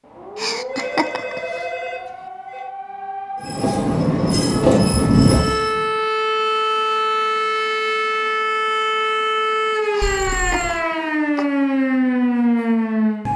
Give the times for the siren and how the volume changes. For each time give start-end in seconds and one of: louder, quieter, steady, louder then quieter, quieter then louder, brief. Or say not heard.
0.0-13.3 louder.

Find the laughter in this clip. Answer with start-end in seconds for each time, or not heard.
0.3-1.4, 9.9-11.4.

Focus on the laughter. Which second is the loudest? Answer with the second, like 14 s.
1 s.